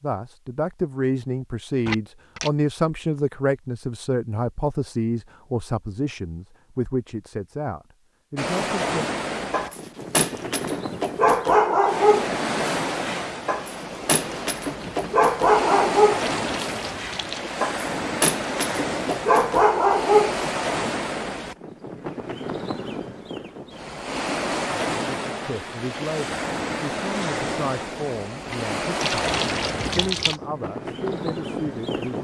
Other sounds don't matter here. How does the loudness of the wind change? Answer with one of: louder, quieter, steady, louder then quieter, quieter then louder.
steady.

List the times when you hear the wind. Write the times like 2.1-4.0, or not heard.
8.3-32.1.